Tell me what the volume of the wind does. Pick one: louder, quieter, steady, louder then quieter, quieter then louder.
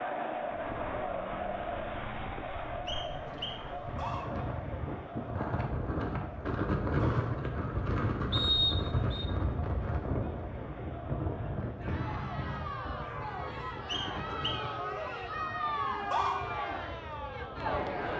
louder then quieter.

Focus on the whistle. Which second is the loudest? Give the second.
9 s.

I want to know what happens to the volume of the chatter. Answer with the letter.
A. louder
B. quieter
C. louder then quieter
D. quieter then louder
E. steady
D.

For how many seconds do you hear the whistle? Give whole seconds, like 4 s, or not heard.
4 s.